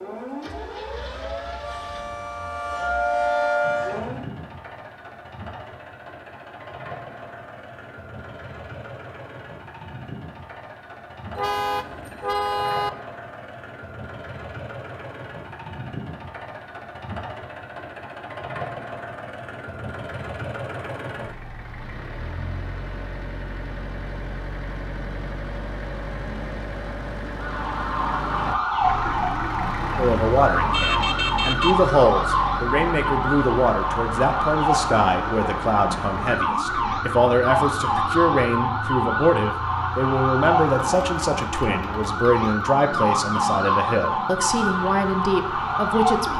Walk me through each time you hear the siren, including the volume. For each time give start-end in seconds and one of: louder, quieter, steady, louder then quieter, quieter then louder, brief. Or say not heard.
0.0-4.2 louder
27.3-46.3 steady.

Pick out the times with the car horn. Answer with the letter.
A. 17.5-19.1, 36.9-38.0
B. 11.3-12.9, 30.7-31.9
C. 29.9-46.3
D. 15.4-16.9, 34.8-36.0
B.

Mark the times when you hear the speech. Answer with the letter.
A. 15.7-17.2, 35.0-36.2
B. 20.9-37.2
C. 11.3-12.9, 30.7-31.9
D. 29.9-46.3
D.